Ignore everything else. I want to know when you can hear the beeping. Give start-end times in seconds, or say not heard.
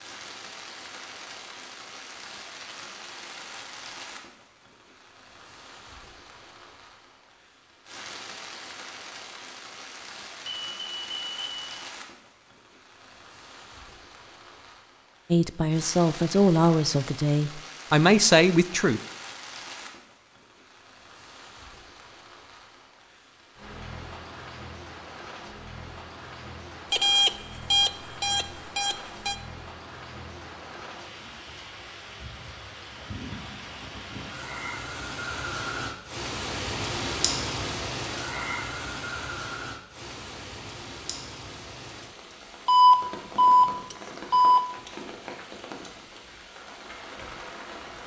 10.7-11.8, 26.9-29.4, 42.6-44.6.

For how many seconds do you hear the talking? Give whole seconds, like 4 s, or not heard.
4 s.